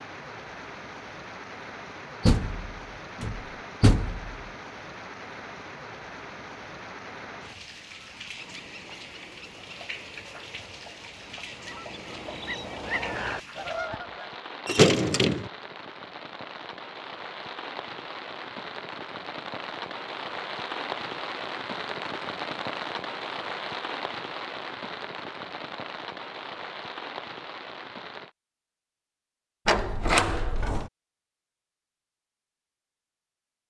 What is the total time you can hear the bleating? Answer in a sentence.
You can't hear the bleating here.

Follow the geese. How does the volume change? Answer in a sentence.
The loudness of the geese goes up.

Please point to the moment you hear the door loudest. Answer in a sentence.
The loudest moment of the door is at 15 seconds.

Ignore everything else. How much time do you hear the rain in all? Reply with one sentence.
The rain can be heard for 28 seconds in total.